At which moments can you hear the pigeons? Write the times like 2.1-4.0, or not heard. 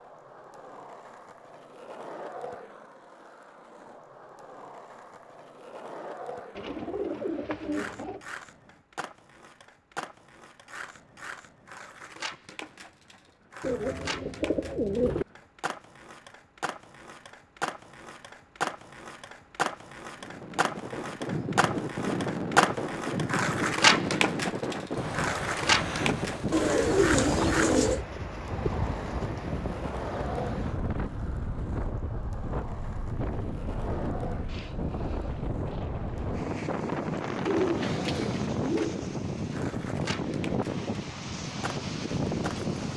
6.5-8.2, 13.6-15.2, 26.5-28.1, 37.5-39.0.